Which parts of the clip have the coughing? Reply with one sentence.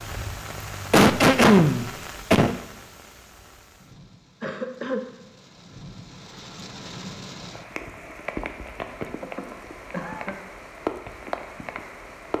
You can hear the coughing from 0.9 to 2.5 s, from 4.4 to 5.0 s and from 9.2 to 10.3 s.